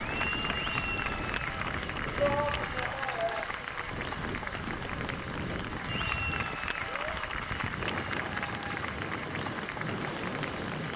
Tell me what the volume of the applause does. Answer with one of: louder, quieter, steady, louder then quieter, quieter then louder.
steady.